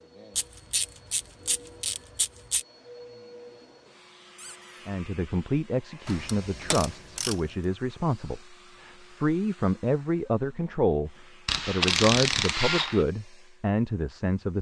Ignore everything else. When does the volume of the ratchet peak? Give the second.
12 s.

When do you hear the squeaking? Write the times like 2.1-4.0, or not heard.
4.3-4.9.